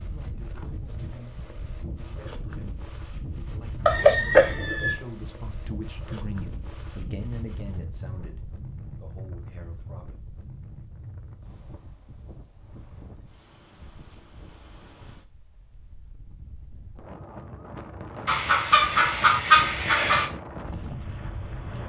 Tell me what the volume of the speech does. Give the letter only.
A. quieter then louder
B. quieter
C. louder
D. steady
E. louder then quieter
E.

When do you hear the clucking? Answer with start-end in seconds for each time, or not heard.
3.9-5.0, 18.2-20.3.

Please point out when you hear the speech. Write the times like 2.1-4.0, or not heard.
0.0-10.2.